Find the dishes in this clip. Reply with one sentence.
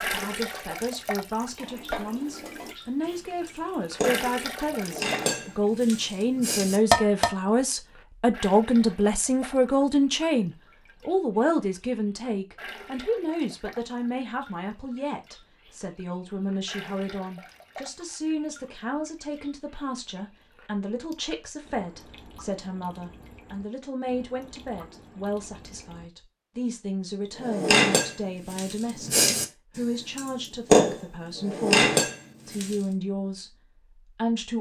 The dishes can be heard from 1.6 to 7.3 s and from 27.4 to 32.8 s.